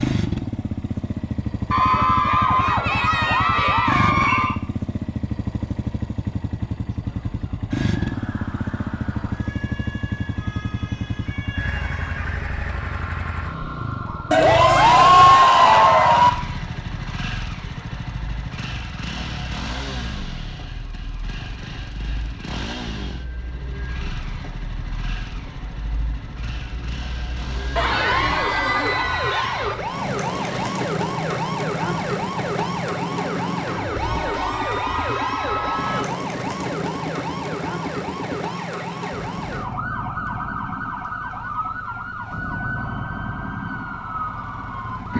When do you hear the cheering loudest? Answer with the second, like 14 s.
15 s.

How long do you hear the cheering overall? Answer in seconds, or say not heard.
9 s.